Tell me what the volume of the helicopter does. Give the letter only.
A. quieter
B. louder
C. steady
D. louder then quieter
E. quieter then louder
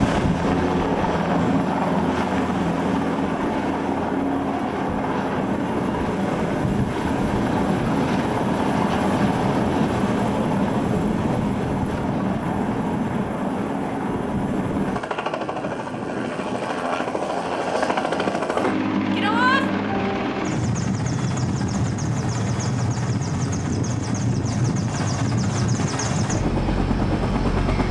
C.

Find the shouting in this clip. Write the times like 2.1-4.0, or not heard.
19.1-19.6.